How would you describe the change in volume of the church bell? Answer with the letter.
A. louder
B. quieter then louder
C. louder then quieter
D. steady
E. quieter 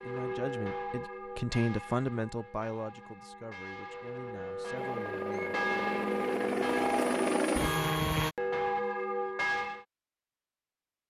B.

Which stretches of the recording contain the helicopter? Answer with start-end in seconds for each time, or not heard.
4.8-8.3.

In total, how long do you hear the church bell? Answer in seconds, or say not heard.
10 s.